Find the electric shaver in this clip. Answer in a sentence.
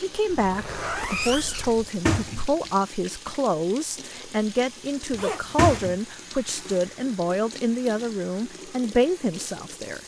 The electric shaver can't be heard in this clip.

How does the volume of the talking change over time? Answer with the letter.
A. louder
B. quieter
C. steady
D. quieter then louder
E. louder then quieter
C.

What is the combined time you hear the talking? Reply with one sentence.
The talking can be heard for 10 seconds in total.